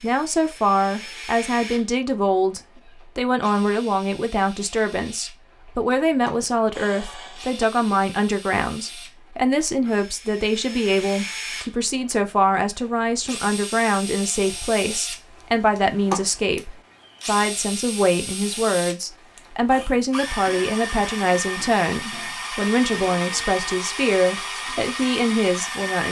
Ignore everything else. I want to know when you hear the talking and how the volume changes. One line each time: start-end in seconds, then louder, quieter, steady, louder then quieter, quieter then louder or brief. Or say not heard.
0.0-26.0 steady.